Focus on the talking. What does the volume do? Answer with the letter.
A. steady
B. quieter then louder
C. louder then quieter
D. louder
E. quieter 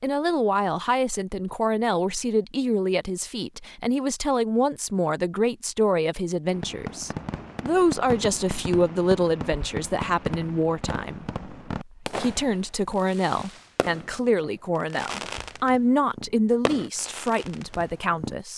A.